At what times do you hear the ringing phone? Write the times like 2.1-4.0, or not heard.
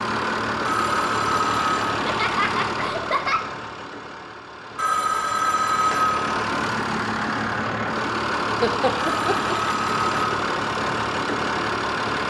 0.7-1.9, 4.8-6.2, 8.9-10.3.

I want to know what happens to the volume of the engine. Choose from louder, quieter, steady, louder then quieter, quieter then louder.
quieter then louder.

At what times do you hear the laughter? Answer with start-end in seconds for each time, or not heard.
1.9-3.4, 8.6-9.6.